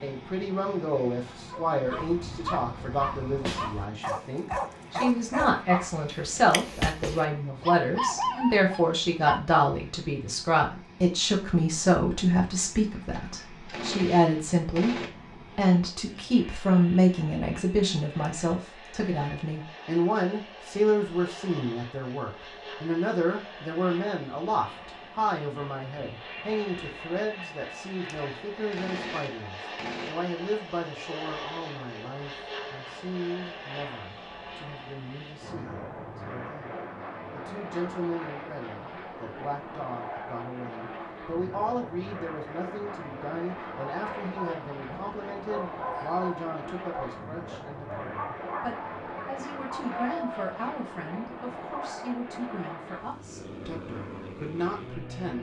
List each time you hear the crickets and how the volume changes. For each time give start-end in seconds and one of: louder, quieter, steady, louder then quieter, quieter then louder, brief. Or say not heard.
not heard.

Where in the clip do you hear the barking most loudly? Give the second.
8 s.